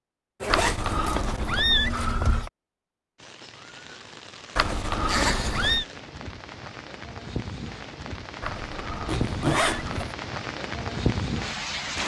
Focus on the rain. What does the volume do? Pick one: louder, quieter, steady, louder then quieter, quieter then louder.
louder.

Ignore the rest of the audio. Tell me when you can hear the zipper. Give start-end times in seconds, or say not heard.
0.4-1.3, 5.0-5.8, 9.1-10.2.